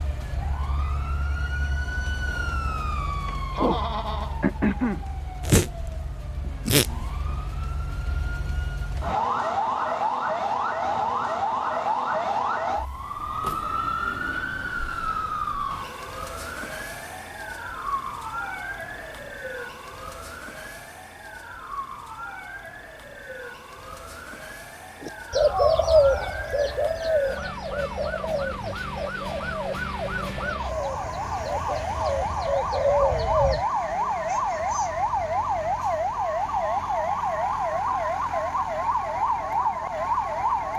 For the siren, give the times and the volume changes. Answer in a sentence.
You can hear the siren from 0.0 to 40.7 s, getting quieter then louder.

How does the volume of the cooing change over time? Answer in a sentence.
The loudness of the cooing goes down, then up.